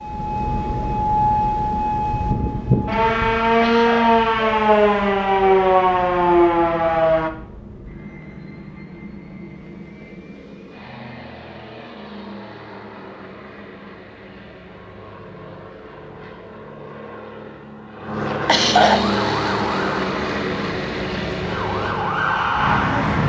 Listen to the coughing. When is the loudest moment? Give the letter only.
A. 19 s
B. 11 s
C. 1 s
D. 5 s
A.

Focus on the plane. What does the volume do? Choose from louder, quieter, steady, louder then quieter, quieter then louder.
quieter then louder.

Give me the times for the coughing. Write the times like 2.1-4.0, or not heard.
3.6-4.1, 18.4-19.1.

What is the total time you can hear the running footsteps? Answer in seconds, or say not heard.
not heard.